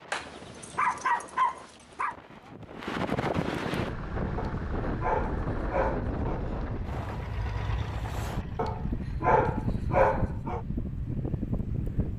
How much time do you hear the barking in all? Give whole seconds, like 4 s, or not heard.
6 s.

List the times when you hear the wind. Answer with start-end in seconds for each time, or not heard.
0.0-12.1.